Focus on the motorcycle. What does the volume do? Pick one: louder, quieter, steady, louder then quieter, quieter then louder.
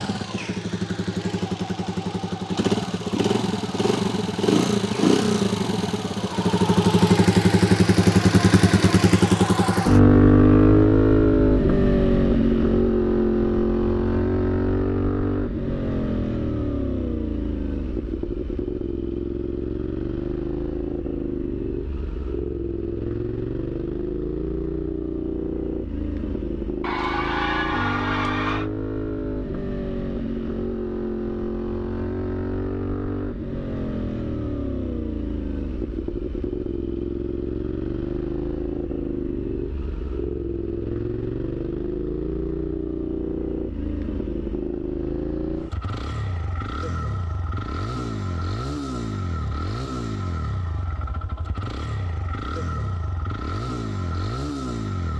quieter.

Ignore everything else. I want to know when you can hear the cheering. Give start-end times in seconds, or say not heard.
26.8-28.7.